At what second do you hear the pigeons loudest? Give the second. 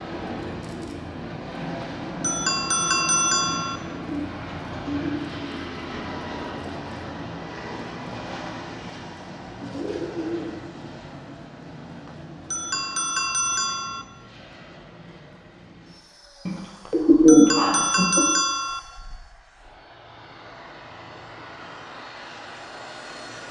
17 s.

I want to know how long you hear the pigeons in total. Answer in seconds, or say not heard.
4 s.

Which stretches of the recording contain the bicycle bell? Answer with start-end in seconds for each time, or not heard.
1.8-3.8, 12.1-14.1, 16.9-18.8.